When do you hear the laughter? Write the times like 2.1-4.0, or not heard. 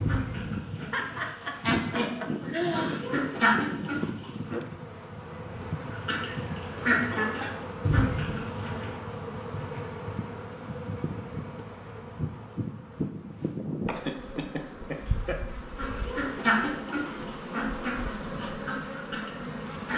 0.9-3.5, 13.8-15.4.